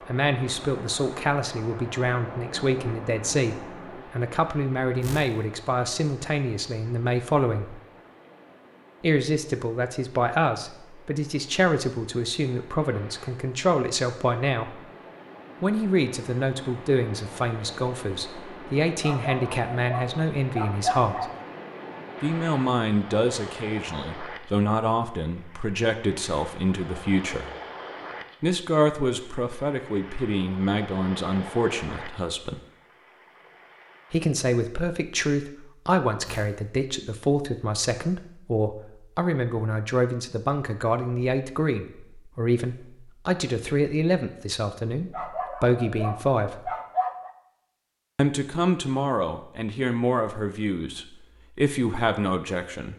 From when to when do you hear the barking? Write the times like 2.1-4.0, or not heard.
19.0-21.4, 45.1-47.4.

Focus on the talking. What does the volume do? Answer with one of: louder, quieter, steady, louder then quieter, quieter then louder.
steady.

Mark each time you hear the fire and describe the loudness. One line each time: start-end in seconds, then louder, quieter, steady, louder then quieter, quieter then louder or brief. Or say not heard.
not heard.